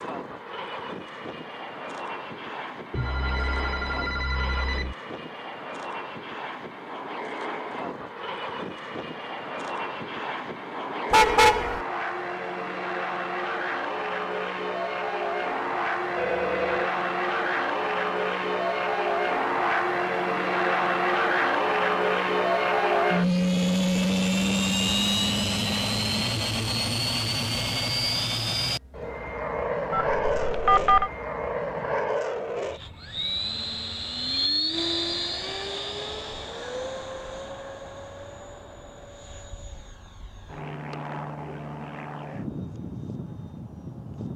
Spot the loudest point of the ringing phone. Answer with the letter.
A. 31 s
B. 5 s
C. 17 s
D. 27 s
A.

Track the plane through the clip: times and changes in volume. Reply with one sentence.
The plane can be heard from 0.0 to 44.3 s, getting louder then quieter.